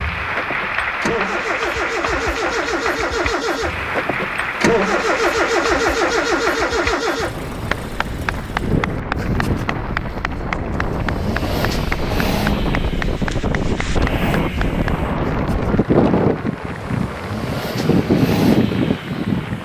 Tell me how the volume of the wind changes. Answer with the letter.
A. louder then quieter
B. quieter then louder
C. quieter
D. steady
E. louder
E.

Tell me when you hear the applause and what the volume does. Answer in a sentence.
The applause can be heard from 0.0 to 19.6 s, getting quieter.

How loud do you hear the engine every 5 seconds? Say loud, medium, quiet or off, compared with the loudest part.
loud, loud, medium, medium.